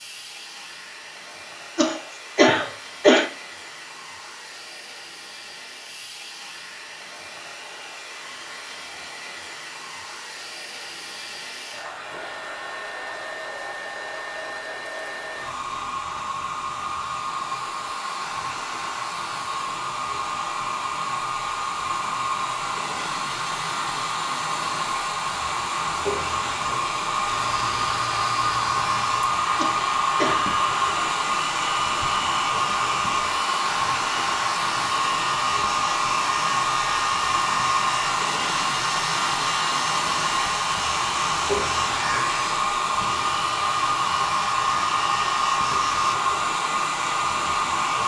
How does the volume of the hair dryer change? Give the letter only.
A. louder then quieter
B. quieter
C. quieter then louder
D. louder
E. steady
D.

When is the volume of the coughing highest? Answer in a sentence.
The volume of the coughing peaks at 3 seconds.